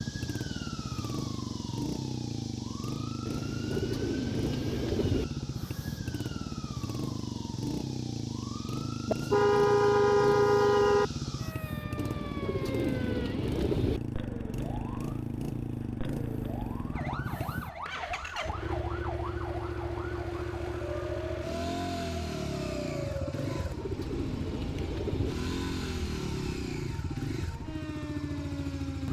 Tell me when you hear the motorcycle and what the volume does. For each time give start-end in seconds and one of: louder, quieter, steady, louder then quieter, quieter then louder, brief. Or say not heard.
0.0-29.0 steady.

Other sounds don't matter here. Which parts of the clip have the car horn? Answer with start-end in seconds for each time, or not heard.
9.1-11.1.